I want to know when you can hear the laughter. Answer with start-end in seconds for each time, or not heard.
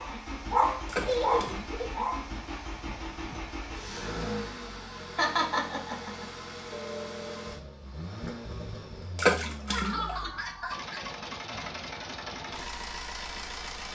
0.9-2.0, 5.2-6.2, 9.7-11.0.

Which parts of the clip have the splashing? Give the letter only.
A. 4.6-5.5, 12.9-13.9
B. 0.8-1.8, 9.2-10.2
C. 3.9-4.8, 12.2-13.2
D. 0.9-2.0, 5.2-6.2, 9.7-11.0
B.